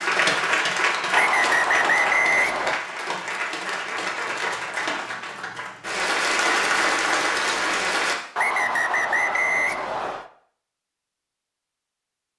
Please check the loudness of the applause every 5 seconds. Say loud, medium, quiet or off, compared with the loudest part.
loud, loud, off.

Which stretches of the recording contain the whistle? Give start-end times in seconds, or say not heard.
1.1-2.8, 8.3-10.3.